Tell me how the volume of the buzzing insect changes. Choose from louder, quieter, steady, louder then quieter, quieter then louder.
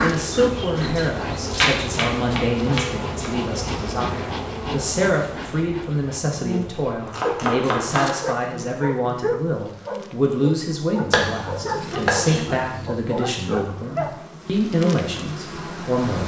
quieter then louder.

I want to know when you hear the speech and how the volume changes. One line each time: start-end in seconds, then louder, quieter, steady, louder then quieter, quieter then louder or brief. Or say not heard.
0.0-16.2 steady.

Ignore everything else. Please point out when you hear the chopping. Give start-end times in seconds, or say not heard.
0.8-3.3, 7.0-8.7, 11.1-12.9.